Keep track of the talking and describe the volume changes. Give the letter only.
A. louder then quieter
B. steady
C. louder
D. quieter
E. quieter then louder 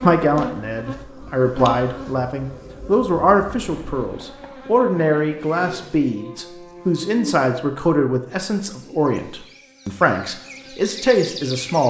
B.